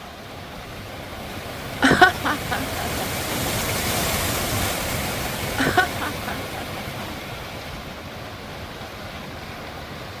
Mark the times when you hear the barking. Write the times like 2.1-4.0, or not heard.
not heard.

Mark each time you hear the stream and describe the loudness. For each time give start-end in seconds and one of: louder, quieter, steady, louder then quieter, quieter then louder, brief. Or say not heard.
0.0-10.1 louder then quieter.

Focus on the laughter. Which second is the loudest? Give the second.
2 s.